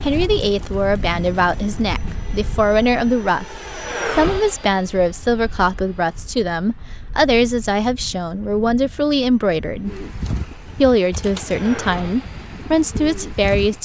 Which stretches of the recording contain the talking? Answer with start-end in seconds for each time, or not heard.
0.0-3.5, 4.1-9.9, 10.8-13.7.